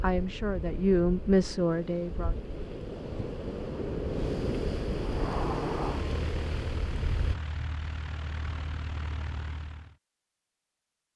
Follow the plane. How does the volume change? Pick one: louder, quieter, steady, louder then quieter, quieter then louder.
quieter.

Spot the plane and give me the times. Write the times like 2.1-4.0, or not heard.
5.0-9.9.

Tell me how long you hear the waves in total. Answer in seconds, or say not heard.
7 s.